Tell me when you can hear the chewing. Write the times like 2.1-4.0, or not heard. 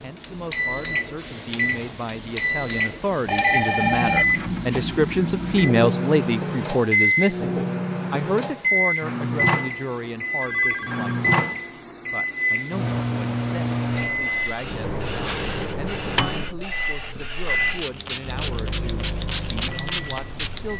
not heard.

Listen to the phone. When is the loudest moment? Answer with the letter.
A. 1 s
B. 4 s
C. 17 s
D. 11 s
B.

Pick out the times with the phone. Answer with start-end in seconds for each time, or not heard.
3.2-4.2, 10.4-11.1.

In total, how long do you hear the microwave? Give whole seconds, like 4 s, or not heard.
21 s.